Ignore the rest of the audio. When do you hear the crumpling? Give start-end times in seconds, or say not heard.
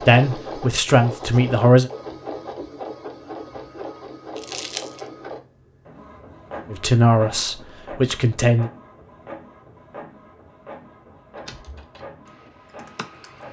4.3-5.0.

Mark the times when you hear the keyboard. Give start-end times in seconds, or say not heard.
11.3-13.4.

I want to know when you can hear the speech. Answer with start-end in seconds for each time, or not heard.
0.0-1.9, 6.7-8.7.